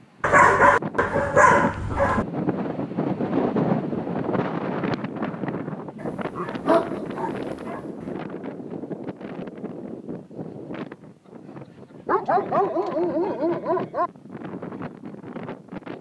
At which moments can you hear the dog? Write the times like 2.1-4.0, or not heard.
0.2-2.2, 6.0-7.8, 12.1-14.1.